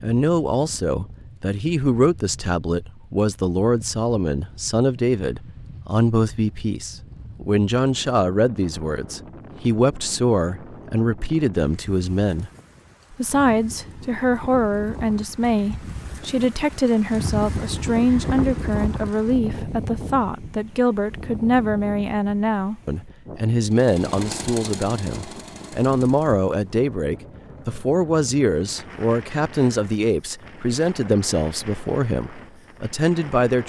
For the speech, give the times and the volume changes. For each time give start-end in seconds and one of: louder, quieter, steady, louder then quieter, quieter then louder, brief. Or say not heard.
0.0-12.5 steady
13.1-33.6 steady.